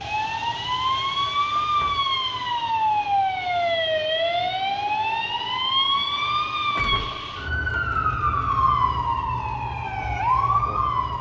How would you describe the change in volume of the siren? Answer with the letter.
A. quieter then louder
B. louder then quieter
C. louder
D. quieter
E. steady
E.